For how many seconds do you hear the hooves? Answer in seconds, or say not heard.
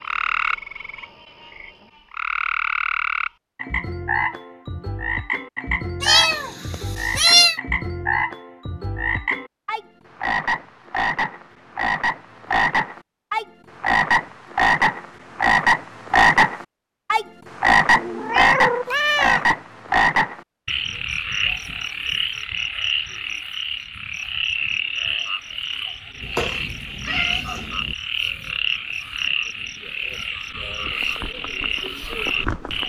2 s.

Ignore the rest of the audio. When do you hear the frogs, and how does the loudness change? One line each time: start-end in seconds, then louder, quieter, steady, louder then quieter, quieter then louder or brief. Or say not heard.
0.0-32.8 louder then quieter.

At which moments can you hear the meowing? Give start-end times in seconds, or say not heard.
6.0-7.5, 17.9-19.6, 26.2-27.9.